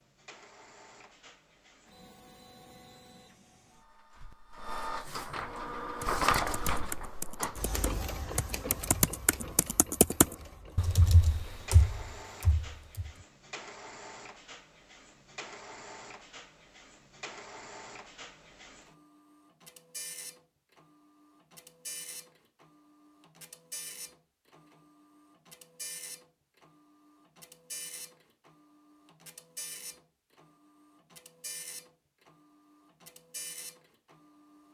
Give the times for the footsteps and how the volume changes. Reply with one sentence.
You can't hear the footsteps here.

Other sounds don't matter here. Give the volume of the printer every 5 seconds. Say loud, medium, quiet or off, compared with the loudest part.
quiet, loud, quiet, quiet, quiet, quiet, quiet.